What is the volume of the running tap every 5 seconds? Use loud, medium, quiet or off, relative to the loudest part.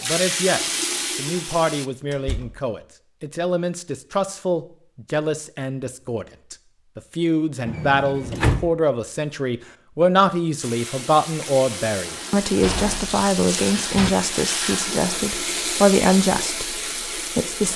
loud, off, loud, loud.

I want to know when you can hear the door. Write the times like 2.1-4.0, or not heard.
2.1-2.6, 7.7-8.7, 12.6-14.1.